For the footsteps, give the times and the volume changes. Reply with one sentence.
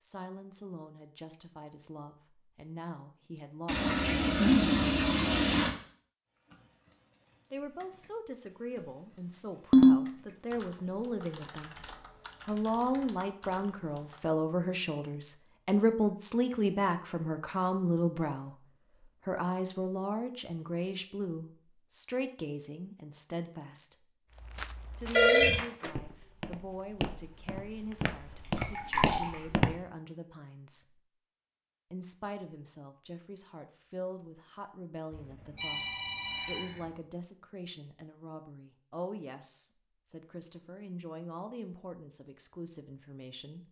You can hear the footsteps from 24.3 to 29.8 s, getting louder.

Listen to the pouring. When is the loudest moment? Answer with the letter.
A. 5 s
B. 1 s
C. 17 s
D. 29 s
A.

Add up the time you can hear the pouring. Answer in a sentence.
The pouring can be heard for 3 seconds in total.